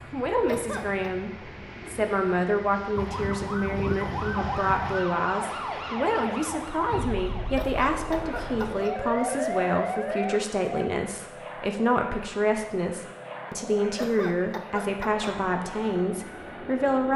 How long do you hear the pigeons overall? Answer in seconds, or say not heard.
not heard.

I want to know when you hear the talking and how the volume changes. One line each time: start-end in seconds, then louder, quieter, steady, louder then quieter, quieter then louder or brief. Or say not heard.
0.1-17.1 steady.